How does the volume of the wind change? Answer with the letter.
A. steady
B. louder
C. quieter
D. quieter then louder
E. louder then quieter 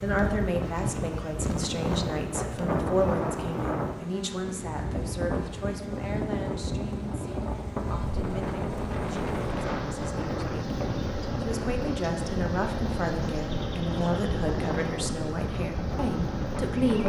A.